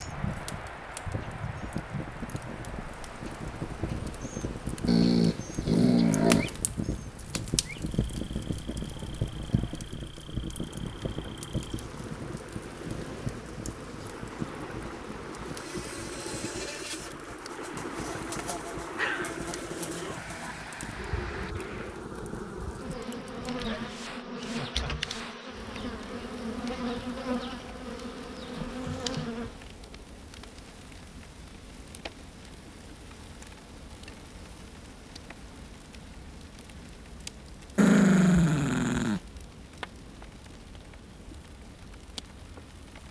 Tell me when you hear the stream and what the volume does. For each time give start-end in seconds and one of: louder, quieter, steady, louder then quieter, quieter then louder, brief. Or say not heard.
0.0-22.1 quieter then louder.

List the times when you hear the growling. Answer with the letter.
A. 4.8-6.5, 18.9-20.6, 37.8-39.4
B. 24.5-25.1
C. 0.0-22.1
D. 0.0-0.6
A.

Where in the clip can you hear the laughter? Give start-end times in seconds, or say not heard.
24.5-25.1.